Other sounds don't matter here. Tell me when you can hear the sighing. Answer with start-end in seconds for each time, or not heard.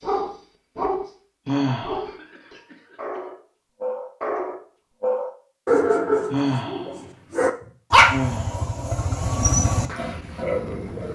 1.4-2.0, 6.3-8.8.